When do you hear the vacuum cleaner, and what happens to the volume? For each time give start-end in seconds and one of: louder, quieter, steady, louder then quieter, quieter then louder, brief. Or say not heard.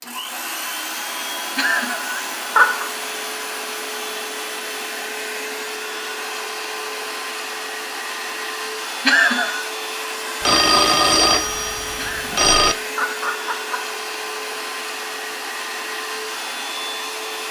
0.0-17.4 steady.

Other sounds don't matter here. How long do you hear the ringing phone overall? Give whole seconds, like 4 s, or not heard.
2 s.